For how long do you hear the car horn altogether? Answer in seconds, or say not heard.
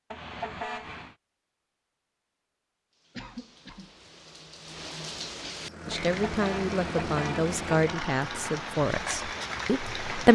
3 s.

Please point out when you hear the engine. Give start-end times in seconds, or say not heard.
5.5-10.2.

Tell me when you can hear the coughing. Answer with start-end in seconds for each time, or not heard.
3.1-4.0.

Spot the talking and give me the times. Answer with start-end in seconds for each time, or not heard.
5.8-10.3.